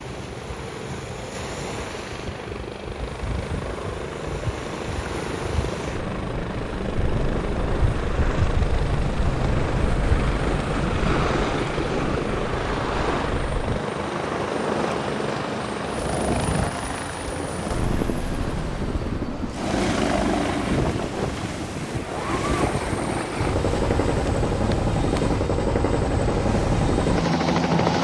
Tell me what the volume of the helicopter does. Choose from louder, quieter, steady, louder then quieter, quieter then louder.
louder.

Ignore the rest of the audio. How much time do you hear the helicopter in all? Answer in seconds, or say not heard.
28 s.